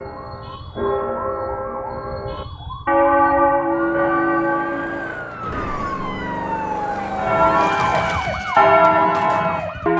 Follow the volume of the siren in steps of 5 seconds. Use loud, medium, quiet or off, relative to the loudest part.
medium, loud.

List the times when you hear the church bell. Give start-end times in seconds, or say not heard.
0.0-5.2, 7.2-9.9.